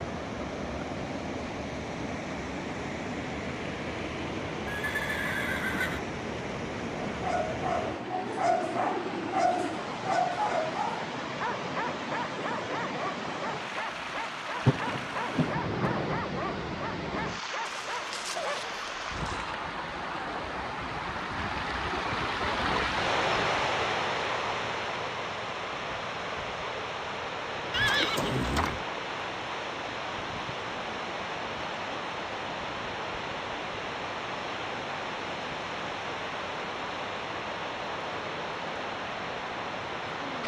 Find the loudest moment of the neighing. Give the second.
28 s.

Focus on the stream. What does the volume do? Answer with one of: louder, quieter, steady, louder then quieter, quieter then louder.
steady.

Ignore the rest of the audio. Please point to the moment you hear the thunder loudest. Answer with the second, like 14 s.
15 s.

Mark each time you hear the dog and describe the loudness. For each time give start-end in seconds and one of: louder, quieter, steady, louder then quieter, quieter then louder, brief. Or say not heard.
7.1-18.8 quieter.